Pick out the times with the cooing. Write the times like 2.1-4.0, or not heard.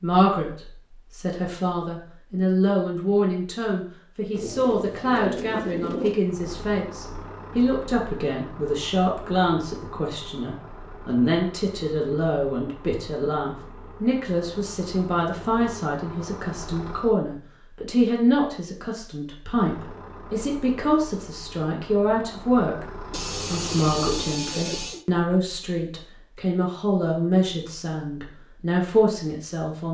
4.3-6.2, 23.1-25.1.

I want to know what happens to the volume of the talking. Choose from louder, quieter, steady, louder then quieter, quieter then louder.
steady.